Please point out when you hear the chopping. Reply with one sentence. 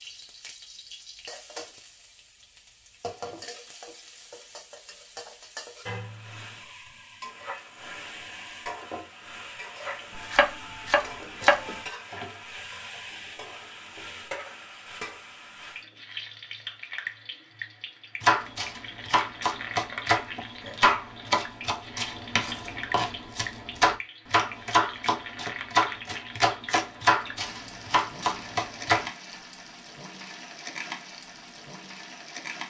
You can hear the chopping from 10.2 to 12.2 s and from 18.2 to 29.1 s.